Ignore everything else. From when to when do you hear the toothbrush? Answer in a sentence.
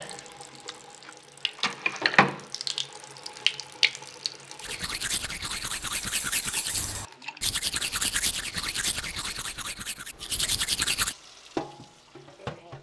The toothbrush can be heard from 4.6 to 11.2 s.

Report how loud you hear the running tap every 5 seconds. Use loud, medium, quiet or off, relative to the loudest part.
loud, quiet, medium.